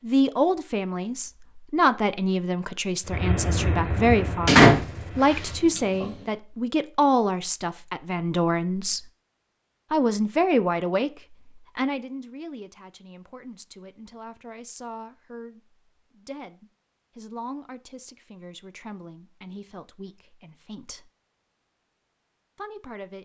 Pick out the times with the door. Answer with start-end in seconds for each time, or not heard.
4.5-5.8.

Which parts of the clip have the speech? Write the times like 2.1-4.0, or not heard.
0.0-9.1, 9.9-11.1, 11.8-21.1, 22.6-23.2.